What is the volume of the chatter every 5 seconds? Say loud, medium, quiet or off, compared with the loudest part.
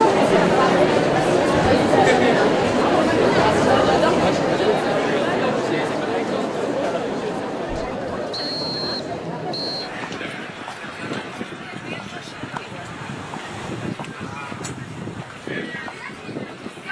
loud, medium, quiet, quiet.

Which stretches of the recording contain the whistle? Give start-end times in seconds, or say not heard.
8.3-9.9.